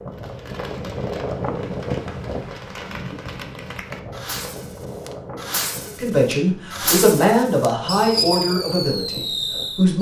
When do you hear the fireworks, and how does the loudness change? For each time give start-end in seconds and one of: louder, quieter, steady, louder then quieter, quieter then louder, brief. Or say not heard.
0.1-9.9 louder.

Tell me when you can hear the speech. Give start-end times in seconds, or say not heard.
6.0-9.9.